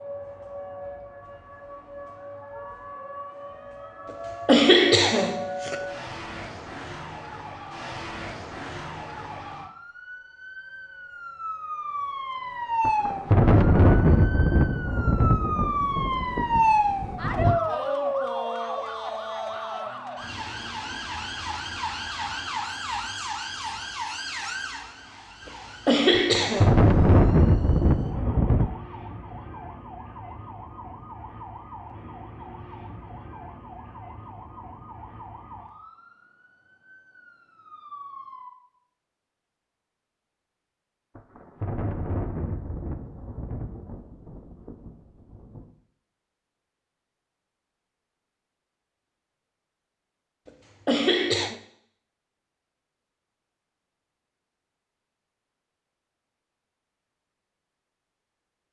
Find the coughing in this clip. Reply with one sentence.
The coughing can be heard from 4.5 to 5.8 s, from 25.4 to 26.7 s and from 50.5 to 51.5 s.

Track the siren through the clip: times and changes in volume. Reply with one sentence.
The siren can be heard from 0.0 to 38.5 s, getting louder then quieter.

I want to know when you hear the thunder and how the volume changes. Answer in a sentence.
You can hear the thunder from 12.8 to 17.6 s, getting quieter; briefly from 26.1 to 28.8 s; and from 41.1 to 45.7 s, getting quieter.